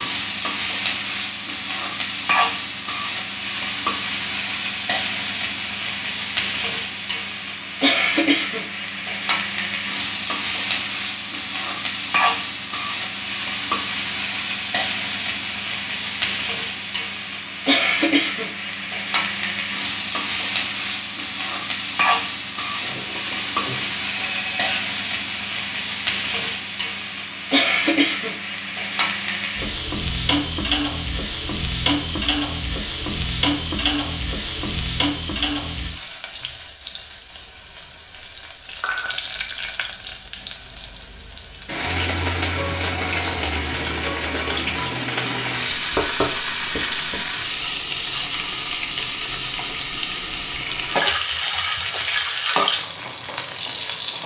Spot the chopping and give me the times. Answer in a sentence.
The chopping can be heard from 45.7 to 47.2 s.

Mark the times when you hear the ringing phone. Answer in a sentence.
The ringing phone can be heard from 22.8 to 24.8 s.